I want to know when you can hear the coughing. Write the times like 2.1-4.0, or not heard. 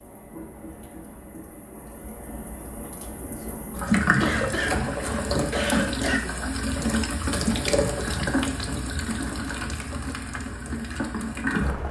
4.2-6.2.